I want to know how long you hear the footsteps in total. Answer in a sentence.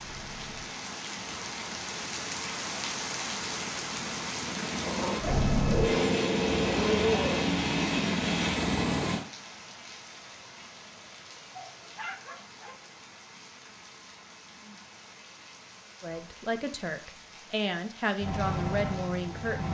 You can't hear the footsteps here.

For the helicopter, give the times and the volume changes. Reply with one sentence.
You can hear the helicopter from 0.0 to 9.2 s, getting louder; and briefly from 18.2 to 19.7 s.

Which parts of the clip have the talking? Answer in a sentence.
The talking can be heard from 16.0 to 19.7 s.